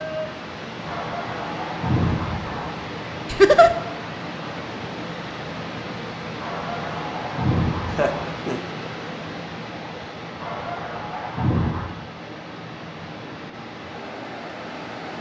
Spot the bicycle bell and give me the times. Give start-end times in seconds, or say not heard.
not heard.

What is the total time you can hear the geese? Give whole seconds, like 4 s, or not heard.
5 s.